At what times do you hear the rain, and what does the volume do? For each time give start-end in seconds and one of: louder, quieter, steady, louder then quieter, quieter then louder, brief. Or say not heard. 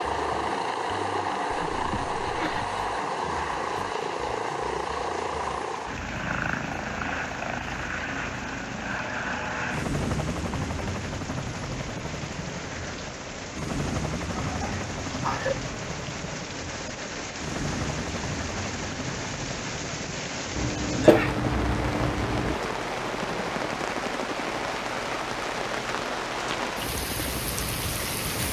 0.0-28.4 louder.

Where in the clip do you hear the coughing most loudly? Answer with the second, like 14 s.
21 s.